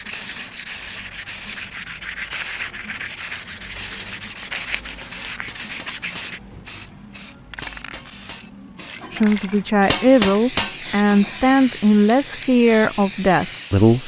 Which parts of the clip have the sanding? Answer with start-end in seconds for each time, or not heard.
0.0-6.4.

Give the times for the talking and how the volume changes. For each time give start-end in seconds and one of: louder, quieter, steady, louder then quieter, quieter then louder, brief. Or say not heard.
9.1-14.0 steady.